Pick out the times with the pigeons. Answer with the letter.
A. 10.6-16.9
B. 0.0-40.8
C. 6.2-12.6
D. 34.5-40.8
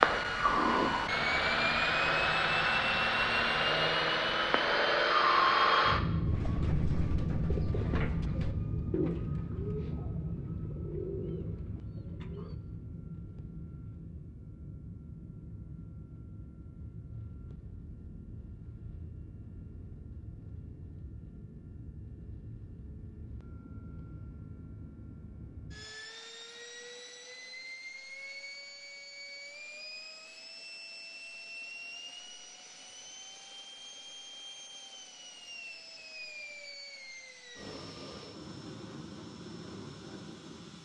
C.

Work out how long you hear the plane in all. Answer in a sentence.
You can hear the plane for 41 seconds altogether.